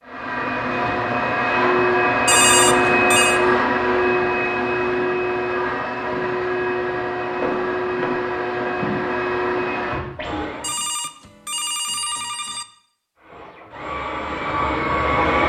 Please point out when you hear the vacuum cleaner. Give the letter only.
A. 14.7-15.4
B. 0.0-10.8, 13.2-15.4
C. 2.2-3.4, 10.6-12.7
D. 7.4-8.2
B.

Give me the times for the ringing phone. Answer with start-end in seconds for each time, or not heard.
2.2-3.4, 10.6-12.7.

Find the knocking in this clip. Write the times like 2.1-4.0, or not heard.
7.4-8.2.